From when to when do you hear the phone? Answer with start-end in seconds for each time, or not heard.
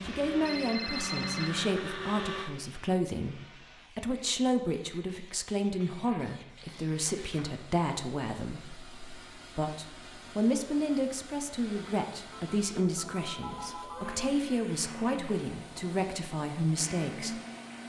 0.5-1.6, 12.3-14.3.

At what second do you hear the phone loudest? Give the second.
1 s.